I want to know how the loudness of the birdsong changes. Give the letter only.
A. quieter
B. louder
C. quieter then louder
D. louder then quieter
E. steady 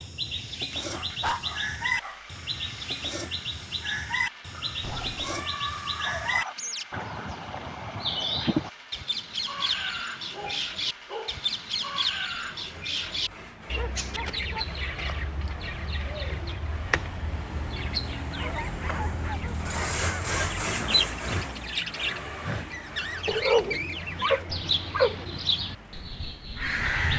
E.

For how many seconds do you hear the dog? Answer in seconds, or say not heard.
10 s.